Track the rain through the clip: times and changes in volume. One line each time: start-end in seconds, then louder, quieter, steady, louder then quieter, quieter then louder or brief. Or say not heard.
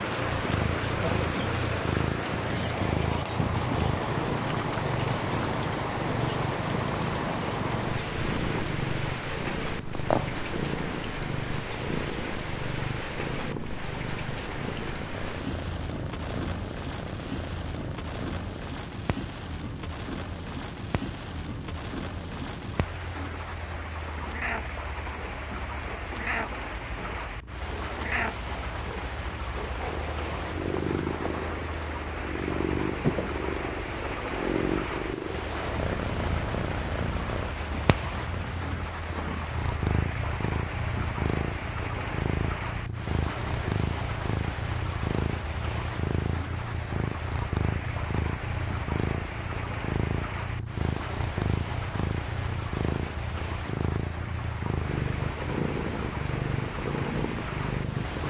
0.0-58.2 quieter.